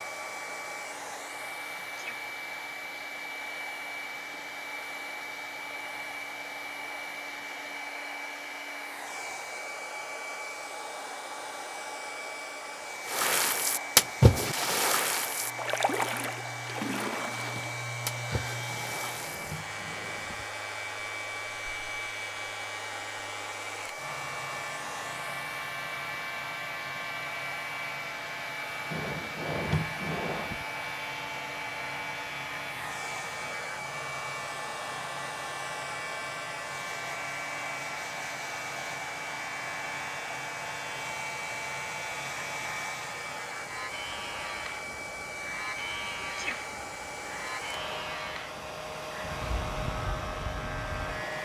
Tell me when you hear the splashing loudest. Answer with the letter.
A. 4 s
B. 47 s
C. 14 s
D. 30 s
C.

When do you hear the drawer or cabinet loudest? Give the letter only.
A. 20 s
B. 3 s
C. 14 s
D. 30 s
D.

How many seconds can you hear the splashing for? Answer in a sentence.
You can hear the splashing for 6 seconds altogether.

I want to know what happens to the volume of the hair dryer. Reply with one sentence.
The volume of the hair dryer stays about the same.